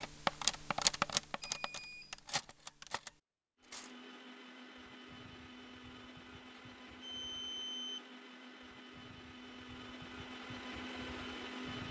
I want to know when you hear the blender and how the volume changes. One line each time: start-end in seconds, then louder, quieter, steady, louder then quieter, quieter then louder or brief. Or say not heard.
3.5-11.8 louder.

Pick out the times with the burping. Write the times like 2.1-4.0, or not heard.
not heard.